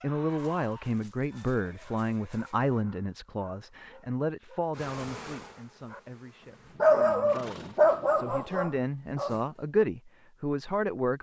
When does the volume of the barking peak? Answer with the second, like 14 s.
7 s.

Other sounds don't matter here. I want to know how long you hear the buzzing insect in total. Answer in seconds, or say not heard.
2 s.